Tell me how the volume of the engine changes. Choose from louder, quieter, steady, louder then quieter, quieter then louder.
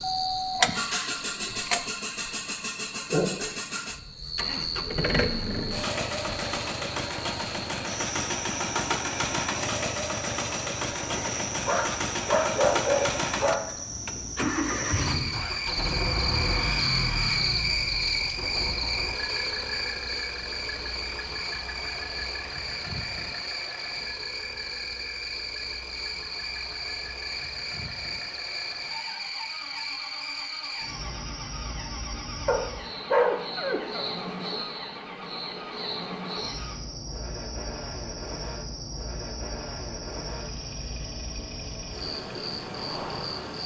quieter.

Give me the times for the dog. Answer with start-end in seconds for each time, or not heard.
11.7-13.7, 32.5-34.0.